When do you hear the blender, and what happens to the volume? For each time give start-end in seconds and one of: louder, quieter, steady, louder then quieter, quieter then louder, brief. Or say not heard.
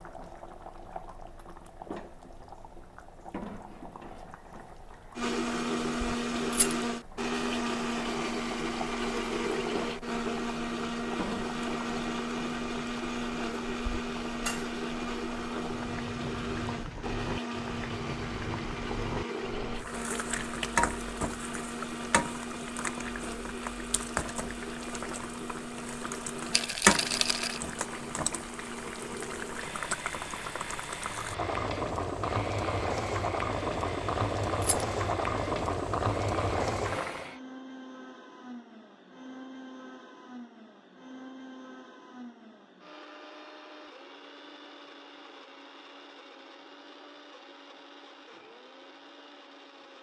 5.2-49.9 quieter.